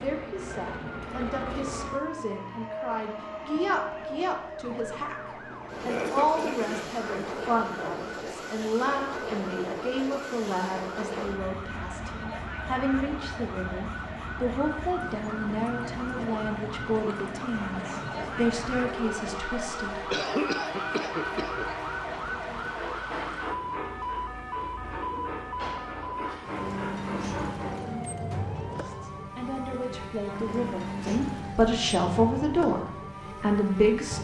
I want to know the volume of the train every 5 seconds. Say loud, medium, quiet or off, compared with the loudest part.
loud, loud, loud, loud, loud, loud, off.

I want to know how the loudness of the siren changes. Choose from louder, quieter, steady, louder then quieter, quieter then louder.
louder.